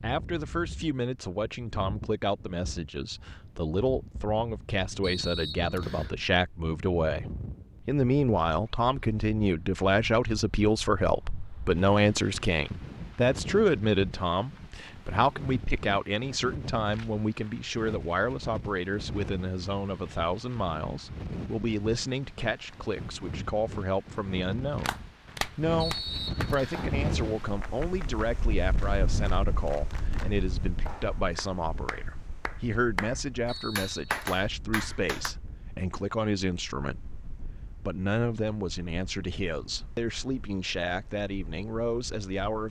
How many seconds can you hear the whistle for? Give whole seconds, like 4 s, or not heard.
3 s.